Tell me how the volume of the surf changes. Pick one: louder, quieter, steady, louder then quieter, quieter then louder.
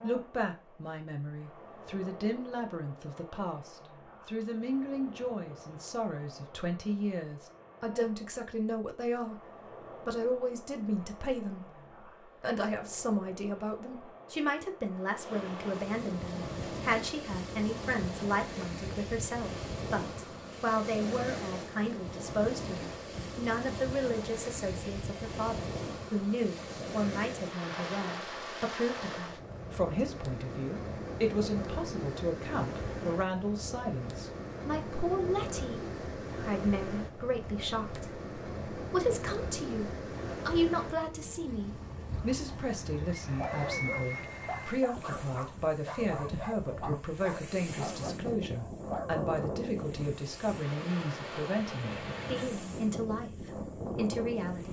louder.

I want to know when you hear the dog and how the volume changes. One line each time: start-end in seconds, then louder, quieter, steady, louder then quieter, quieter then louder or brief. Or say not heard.
43.2-49.4 steady.